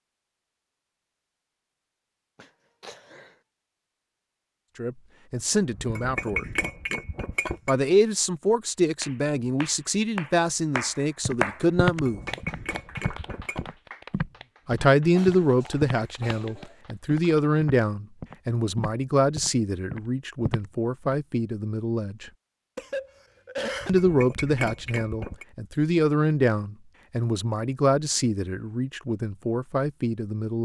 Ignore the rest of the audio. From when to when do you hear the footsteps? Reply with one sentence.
The footsteps can be heard from 11.2 to 21.1 s.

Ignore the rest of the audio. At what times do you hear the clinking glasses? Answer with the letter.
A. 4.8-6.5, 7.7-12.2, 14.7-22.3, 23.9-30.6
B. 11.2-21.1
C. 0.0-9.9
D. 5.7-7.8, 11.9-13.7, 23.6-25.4
D.